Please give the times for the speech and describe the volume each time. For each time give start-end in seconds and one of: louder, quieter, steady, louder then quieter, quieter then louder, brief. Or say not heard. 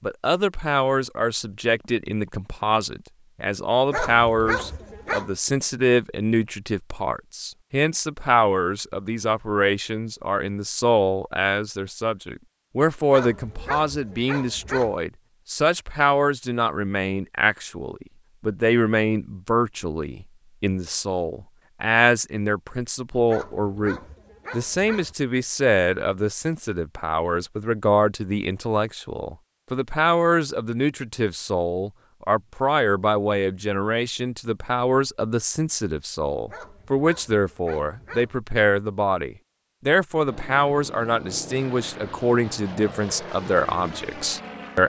0.0-44.8 steady.